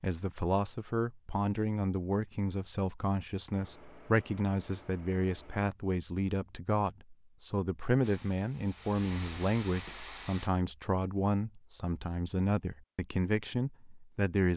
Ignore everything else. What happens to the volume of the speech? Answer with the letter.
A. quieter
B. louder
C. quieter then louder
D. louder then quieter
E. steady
E.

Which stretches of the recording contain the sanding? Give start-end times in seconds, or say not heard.
not heard.